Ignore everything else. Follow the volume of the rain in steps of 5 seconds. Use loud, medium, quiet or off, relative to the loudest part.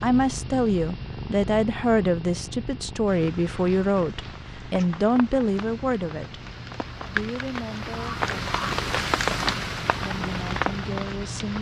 quiet, loud, loud.